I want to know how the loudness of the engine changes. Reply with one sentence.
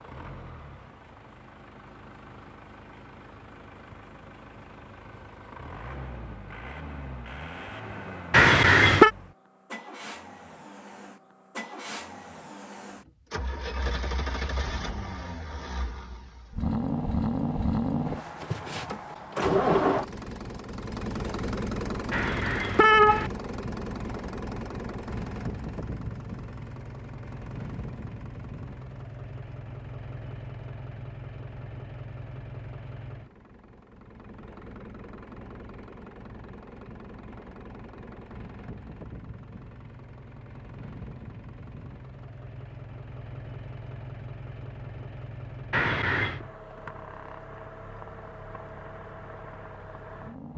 The loudness of the engine goes up, then down.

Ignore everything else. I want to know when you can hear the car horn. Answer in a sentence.
The car horn can be heard from 8.3 to 9.1 s, from 22.1 to 23.3 s and from 45.7 to 46.5 s.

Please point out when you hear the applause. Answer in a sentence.
The applause can't be heard in this clip.